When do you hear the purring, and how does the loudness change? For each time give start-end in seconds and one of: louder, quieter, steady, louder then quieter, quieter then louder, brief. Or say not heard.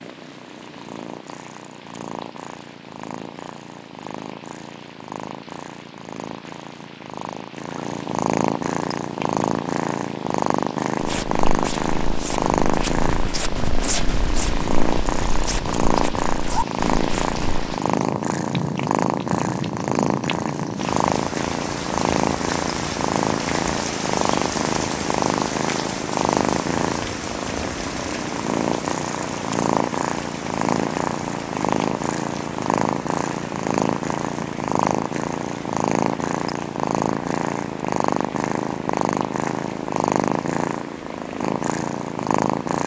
0.0-42.8 louder.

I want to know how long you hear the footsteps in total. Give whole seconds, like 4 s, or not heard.
7 s.